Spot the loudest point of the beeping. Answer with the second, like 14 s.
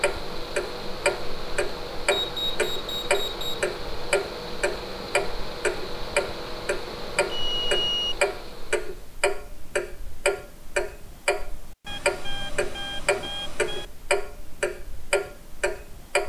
8 s.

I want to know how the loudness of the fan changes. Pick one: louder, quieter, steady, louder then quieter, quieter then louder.
steady.